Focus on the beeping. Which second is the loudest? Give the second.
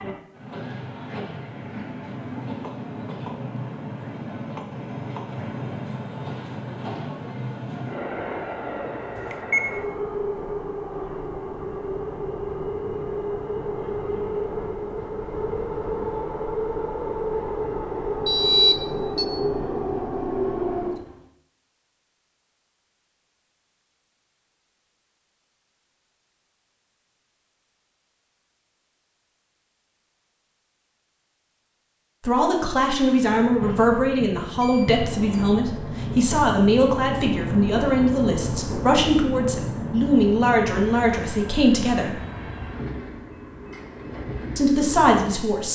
19 s.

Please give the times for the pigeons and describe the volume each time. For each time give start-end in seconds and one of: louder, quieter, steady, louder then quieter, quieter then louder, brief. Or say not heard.
not heard.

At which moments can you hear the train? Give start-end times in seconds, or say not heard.
0.0-21.1, 32.9-45.6.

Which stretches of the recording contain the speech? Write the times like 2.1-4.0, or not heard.
32.2-42.1, 44.5-45.6.